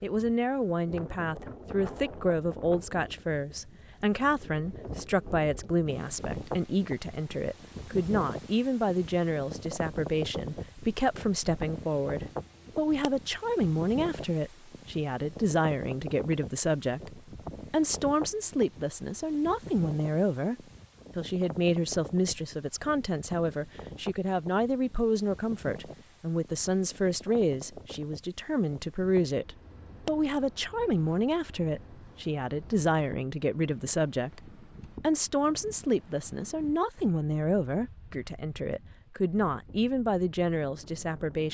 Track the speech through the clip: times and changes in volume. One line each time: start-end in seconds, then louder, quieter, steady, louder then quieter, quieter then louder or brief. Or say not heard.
0.0-20.6 steady
21.1-41.4 steady.